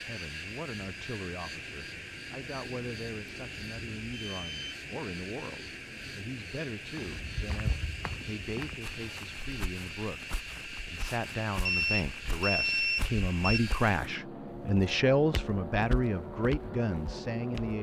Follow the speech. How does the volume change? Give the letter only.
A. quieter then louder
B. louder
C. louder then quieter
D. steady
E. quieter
B.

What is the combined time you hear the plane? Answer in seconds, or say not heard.
18 s.